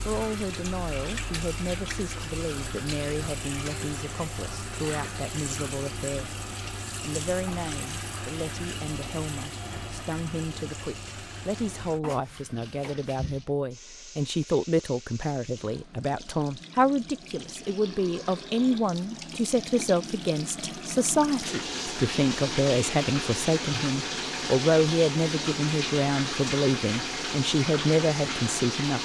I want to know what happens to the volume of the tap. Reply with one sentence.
The loudness of the tap goes down, then up.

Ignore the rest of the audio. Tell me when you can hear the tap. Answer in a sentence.
You can hear the tap from 0.0 to 29.0 s.